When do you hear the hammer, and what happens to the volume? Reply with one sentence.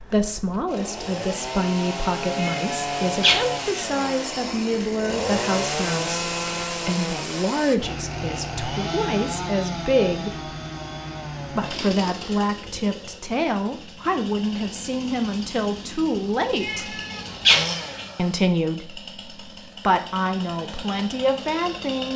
You can't hear the hammer here.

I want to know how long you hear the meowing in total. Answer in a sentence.
The meowing can be heard for 3 seconds in total.